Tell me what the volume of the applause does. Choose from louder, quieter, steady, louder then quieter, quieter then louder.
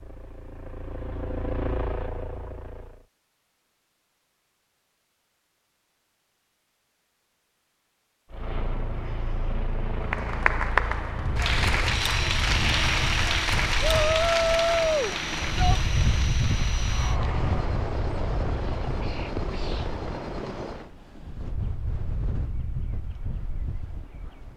quieter.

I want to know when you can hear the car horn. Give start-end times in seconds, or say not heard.
not heard.